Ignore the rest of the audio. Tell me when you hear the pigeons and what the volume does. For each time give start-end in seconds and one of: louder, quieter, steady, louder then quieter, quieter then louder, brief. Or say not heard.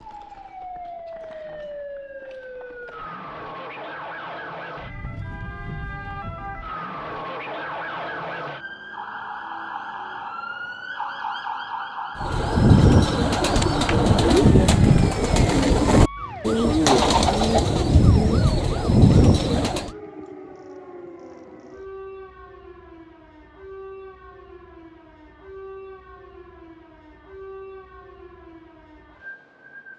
12.2-19.9 steady.